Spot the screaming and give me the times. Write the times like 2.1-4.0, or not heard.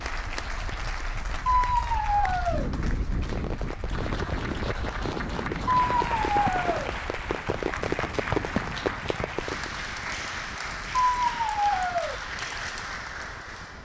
1.4-2.7, 5.7-6.9, 11.0-12.2.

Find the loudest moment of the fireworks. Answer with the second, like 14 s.
8 s.